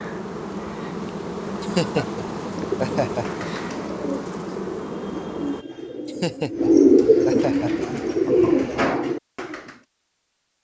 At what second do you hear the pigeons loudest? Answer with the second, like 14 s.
7 s.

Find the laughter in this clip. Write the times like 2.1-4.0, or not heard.
1.6-3.5, 6.0-7.9.